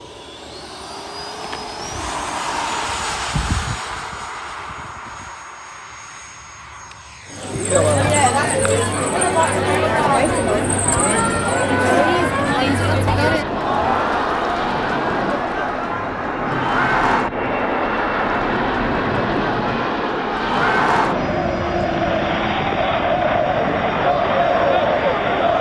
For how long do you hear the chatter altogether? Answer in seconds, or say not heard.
18 s.